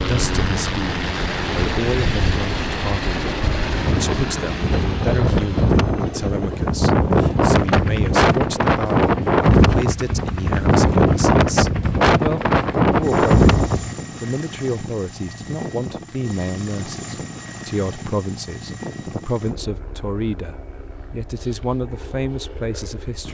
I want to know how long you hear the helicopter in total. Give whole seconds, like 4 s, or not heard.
23 s.